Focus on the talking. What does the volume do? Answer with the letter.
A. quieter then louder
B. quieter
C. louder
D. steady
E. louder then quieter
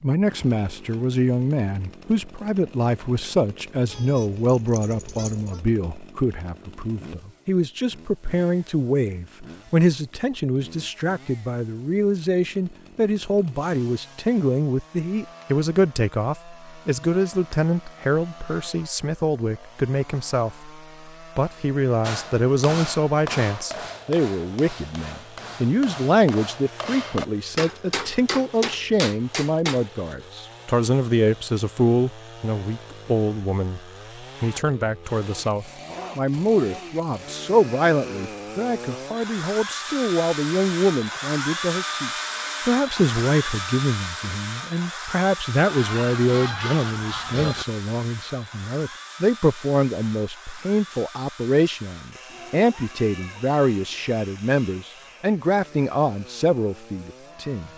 D.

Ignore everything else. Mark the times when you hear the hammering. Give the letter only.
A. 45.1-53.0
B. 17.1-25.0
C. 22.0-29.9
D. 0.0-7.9
C.